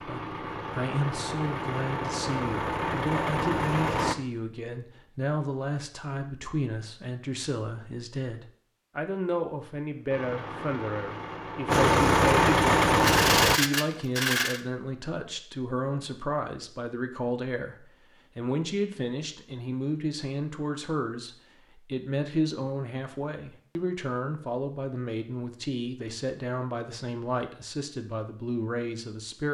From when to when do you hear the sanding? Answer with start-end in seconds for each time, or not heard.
12.9-14.6.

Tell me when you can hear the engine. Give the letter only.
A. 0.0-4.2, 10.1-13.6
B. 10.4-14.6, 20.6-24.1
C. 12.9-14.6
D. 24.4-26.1
A.